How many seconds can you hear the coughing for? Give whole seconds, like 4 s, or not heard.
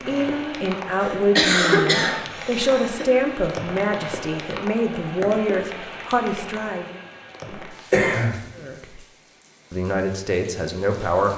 3 s.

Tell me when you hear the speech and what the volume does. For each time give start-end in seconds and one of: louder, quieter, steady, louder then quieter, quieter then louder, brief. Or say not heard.
0.1-7.0 steady
8.6-9.0 brief
9.7-11.3 brief.